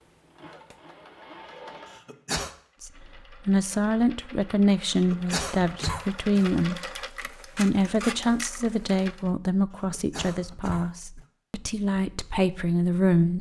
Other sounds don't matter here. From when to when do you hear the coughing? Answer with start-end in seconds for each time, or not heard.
1.9-2.5, 4.9-6.5, 9.8-11.2.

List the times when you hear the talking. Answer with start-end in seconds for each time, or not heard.
2.8-13.3.